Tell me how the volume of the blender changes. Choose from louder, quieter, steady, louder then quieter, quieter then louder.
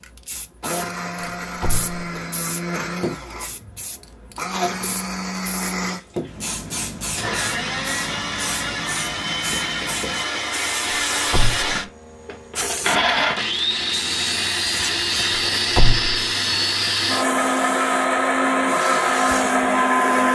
louder.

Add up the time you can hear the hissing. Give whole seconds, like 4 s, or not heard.
20 s.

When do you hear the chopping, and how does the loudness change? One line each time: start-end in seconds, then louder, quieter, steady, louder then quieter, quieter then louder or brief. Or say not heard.
not heard.